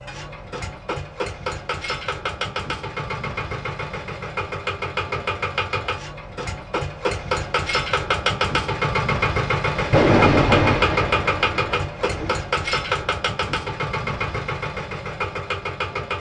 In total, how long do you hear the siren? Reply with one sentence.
The siren can't be heard in this clip.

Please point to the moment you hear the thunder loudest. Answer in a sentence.
The volume of the thunder peaks at 10 seconds.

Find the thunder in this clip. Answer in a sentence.
The thunder can be heard from 9.8 to 12.3 s.